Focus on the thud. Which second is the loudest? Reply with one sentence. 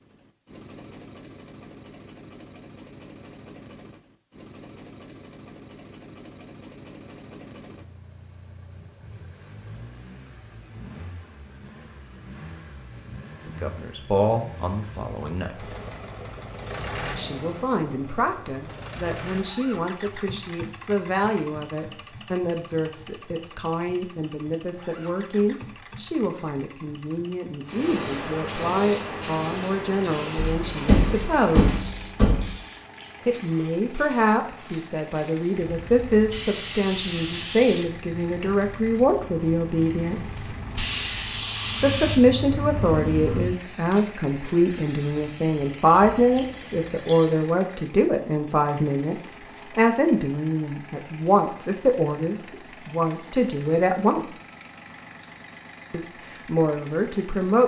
The volume of the thud peaks at 31 seconds.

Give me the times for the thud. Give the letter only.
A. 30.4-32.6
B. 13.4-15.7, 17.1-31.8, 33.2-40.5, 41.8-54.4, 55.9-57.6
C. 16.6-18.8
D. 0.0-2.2
A.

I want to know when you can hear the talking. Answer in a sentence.
The talking can be heard from 13.4 to 15.7 s, from 17.1 to 31.8 s, from 33.2 to 40.5 s, from 41.8 to 54.4 s and from 55.9 to 57.6 s.